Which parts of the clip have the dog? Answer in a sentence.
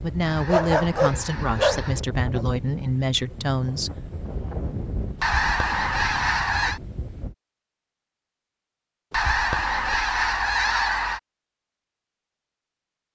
You can hear the dog from 0.5 to 1.9 s.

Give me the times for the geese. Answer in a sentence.
You can hear the geese from 0.2 to 2.0 s, from 5.2 to 6.8 s and from 9.1 to 11.2 s.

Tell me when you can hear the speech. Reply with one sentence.
You can hear the speech from 0.0 to 4.0 s.